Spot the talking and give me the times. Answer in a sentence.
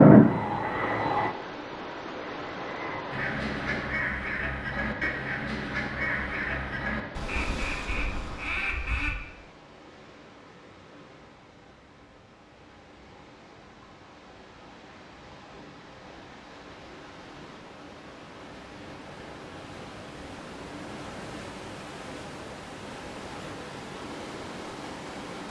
You can't hear the talking here.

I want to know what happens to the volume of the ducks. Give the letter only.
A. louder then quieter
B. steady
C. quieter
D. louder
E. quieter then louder
B.